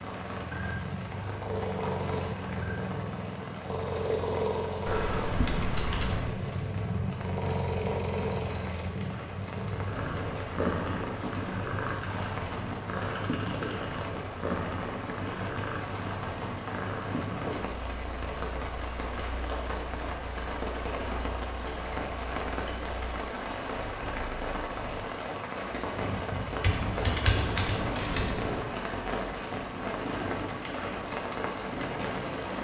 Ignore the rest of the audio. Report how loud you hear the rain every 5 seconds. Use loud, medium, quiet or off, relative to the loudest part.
medium, medium, medium, loud, loud, loud, loud.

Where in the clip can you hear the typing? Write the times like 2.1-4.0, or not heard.
4.8-6.3, 12.0-13.9, 26.6-28.6.